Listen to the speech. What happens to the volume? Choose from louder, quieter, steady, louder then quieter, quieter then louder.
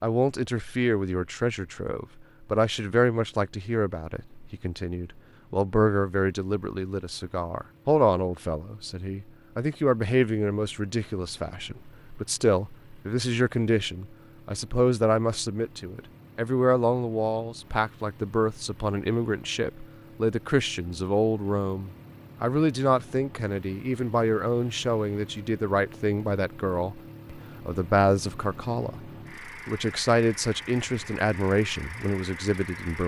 steady.